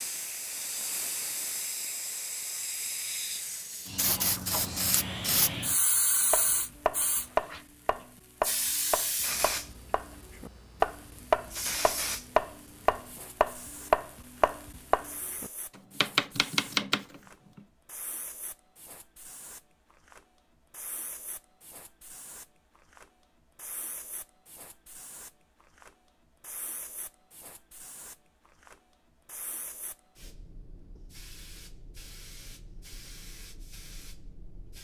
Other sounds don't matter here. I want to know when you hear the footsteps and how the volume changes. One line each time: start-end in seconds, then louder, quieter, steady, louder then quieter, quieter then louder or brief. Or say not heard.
not heard.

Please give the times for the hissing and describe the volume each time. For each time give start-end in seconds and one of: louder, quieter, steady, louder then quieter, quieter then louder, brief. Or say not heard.
0.0-34.8 quieter.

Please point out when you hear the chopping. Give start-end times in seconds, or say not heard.
6.3-17.6.